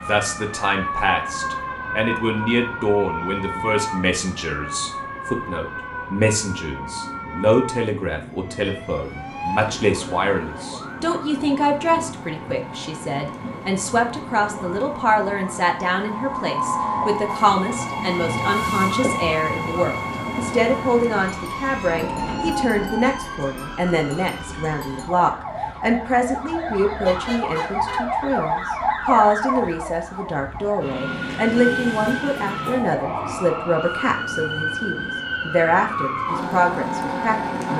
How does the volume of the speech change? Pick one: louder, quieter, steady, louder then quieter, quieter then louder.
steady.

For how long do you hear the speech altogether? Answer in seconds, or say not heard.
38 s.